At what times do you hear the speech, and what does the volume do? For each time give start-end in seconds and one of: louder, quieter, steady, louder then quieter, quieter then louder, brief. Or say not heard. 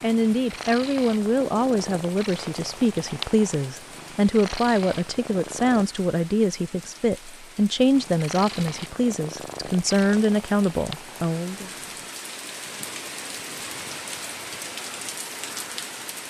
0.0-11.7 steady.